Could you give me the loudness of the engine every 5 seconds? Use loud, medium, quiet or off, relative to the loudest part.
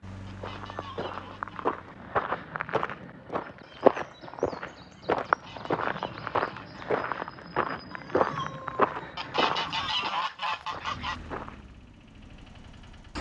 medium, off, loud.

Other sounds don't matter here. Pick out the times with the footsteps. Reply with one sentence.
The footsteps can be heard from 0.2 to 11.7 s.